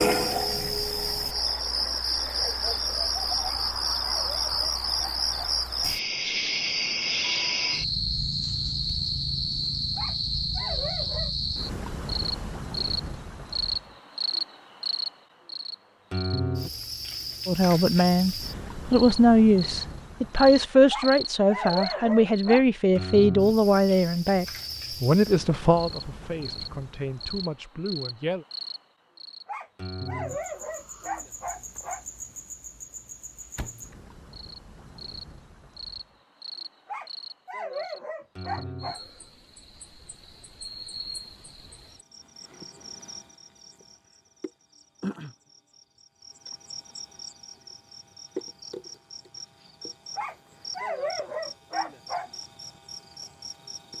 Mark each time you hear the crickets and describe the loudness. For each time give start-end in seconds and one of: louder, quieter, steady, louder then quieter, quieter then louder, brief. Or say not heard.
0.0-53.9 quieter.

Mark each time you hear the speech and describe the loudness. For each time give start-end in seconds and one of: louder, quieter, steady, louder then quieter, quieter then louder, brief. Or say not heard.
17.4-28.4 quieter.